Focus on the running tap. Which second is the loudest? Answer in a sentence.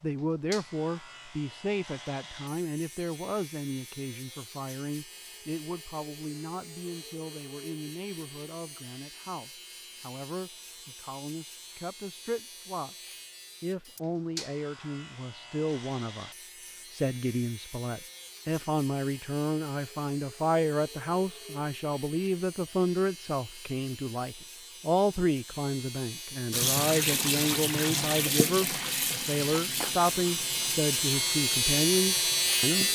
The loudest moment of the running tap is at 27 seconds.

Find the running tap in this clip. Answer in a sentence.
The running tap can be heard from 26.5 to 32.9 s.